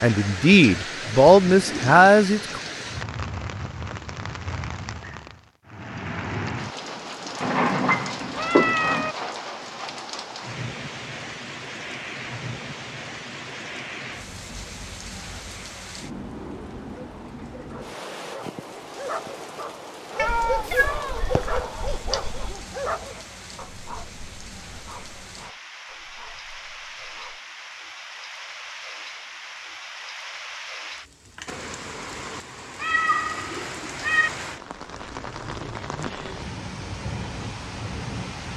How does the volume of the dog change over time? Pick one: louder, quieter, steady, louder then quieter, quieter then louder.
louder then quieter.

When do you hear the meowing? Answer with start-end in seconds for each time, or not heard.
7.4-9.2, 20.1-22.6, 32.8-34.3.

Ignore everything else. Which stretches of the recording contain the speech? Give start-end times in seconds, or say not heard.
0.0-2.6.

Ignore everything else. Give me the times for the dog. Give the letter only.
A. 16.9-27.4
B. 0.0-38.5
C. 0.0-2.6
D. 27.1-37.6
A.